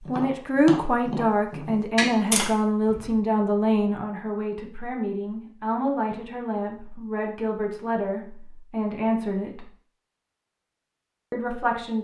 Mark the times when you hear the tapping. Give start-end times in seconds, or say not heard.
0.1-3.1.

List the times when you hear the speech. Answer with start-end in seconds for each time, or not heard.
0.1-9.7, 11.3-11.9.